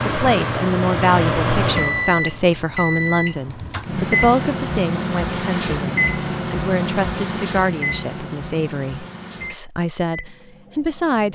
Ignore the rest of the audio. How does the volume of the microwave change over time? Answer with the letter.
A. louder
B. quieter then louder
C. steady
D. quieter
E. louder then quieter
D.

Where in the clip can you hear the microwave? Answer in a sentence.
You can hear the microwave from 0.0 to 11.3 s.